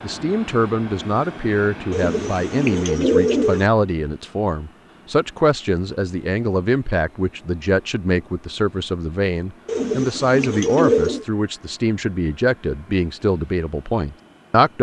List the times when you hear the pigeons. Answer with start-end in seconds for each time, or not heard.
1.9-3.6, 9.7-11.2.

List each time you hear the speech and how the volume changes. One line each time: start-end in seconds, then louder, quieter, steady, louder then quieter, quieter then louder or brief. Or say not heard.
0.0-14.7 steady.